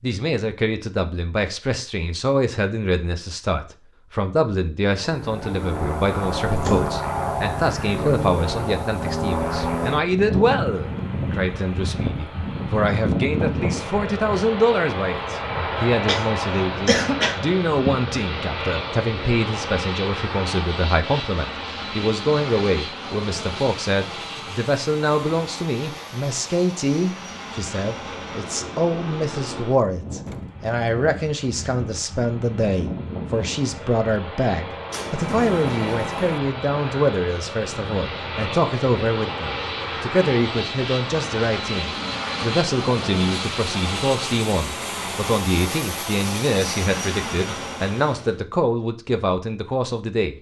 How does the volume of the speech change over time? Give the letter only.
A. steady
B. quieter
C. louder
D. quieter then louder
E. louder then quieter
A.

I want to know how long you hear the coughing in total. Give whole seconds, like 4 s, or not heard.
2 s.